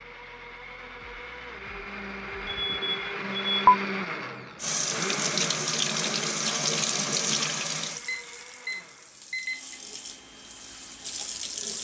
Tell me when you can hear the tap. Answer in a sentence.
You can hear the tap from 4.5 to 11.7 s.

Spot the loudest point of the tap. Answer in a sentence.
The loudest moment of the tap is at 7 seconds.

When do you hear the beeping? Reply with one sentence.
You can hear the beeping from 2.5 to 3.8 s and from 8.1 to 9.8 s.